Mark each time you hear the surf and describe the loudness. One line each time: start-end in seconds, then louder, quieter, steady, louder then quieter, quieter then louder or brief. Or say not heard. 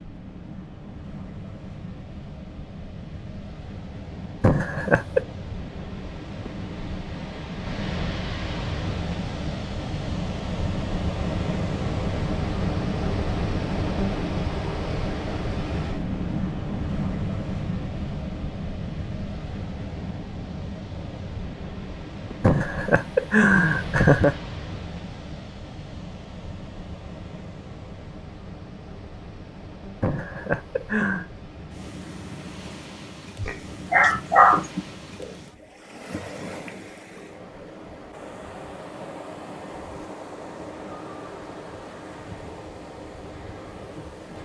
0.0-44.4 louder then quieter.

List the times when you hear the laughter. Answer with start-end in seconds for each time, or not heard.
4.4-5.2, 22.4-24.4, 30.0-31.2.